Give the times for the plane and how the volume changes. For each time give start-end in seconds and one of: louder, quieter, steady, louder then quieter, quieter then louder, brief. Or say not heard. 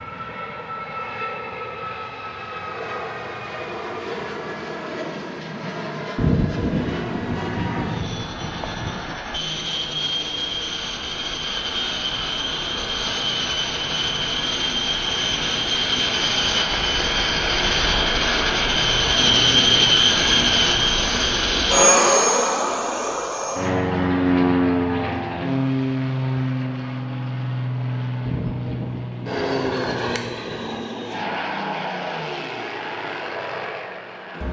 0.0-34.4 louder then quieter.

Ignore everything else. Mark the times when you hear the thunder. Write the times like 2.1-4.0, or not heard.
6.2-9.2, 28.2-30.6.